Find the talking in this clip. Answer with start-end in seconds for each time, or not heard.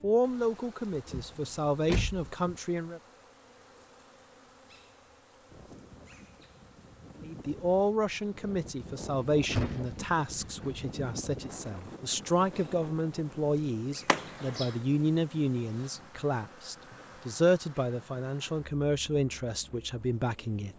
0.0-3.0, 7.2-20.7.